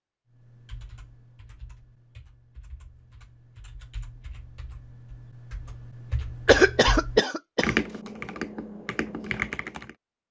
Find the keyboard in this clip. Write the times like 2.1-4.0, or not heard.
0.3-9.9.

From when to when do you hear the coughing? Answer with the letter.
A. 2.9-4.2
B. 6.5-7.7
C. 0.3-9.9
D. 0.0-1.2
B.